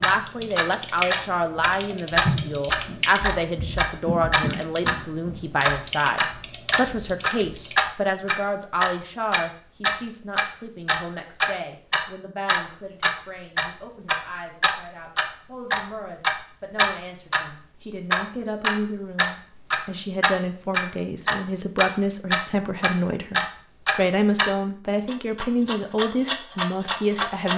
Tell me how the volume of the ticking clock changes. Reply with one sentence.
The loudness of the ticking clock stays about the same.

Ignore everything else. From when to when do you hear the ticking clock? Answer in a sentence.
The ticking clock can be heard from 0.0 to 5.0 s and from 5.6 to 27.5 s.